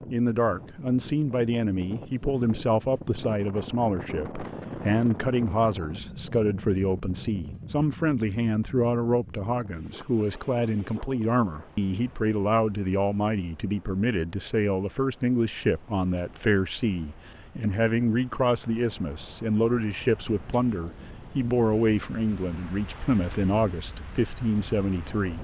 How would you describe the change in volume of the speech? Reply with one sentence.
The volume of the speech stays about the same.